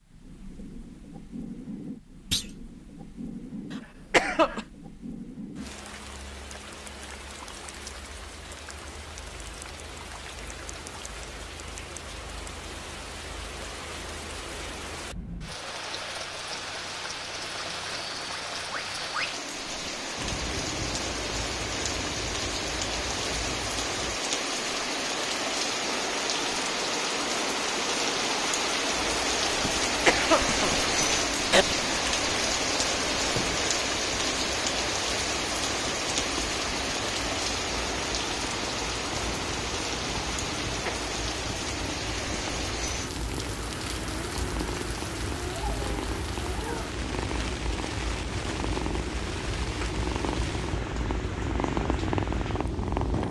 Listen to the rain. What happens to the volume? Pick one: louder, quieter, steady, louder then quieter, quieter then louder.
louder then quieter.